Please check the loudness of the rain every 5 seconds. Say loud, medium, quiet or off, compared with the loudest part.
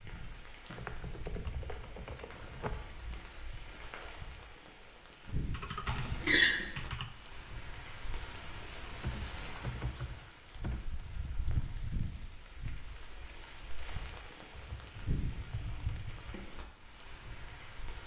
medium, loud, loud, loud.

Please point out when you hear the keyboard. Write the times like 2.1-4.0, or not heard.
0.7-2.7, 5.5-7.1, 9.0-10.9, 14.5-16.4.